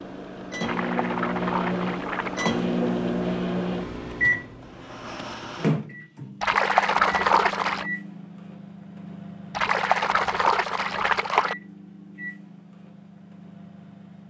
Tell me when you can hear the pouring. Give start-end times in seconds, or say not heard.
0.6-2.5, 6.4-7.9, 9.6-11.6.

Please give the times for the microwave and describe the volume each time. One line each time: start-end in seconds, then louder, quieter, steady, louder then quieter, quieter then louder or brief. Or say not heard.
0.0-14.2 quieter.